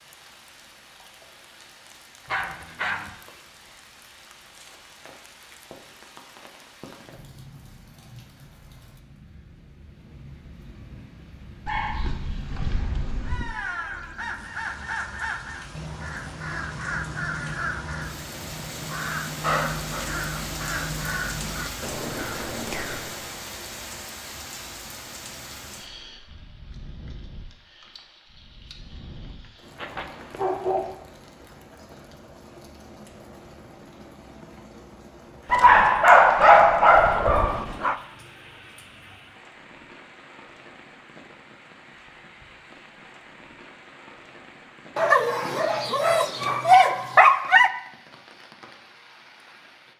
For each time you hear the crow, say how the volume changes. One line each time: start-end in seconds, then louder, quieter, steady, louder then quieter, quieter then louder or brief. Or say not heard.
13.2-23.4 steady.